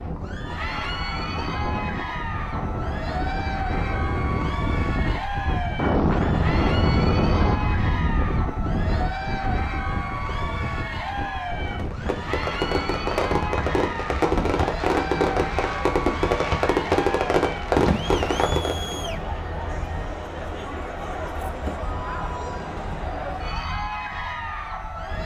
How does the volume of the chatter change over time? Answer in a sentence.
The volume of the chatter stays about the same.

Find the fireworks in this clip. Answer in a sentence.
The fireworks can be heard from 11.6 to 18.9 s.